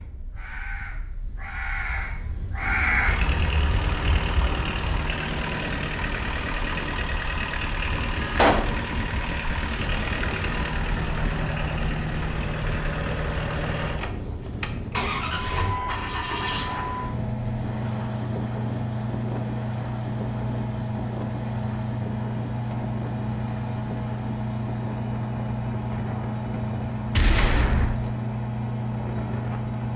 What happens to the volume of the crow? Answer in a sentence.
The loudness of the crow goes up, then down.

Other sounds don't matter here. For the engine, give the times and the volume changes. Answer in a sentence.
You can hear the engine from 3.0 to 29.9 s, at a steady volume.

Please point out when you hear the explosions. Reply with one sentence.
The explosions can be heard from 8.3 to 8.8 s and from 27.1 to 28.1 s.